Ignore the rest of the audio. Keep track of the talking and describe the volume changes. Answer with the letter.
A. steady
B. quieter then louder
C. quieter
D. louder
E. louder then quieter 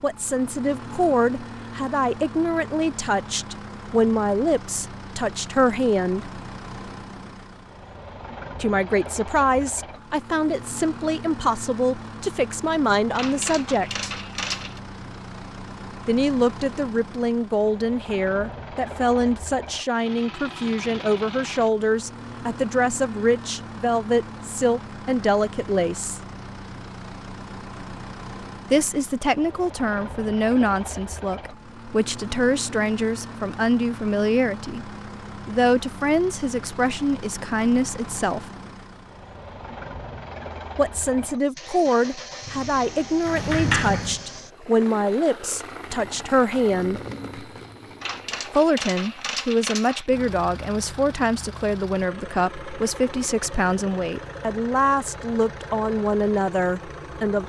A.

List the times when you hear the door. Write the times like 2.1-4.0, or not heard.
43.2-44.2.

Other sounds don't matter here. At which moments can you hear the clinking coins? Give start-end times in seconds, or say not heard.
13.2-14.8, 48.0-50.1.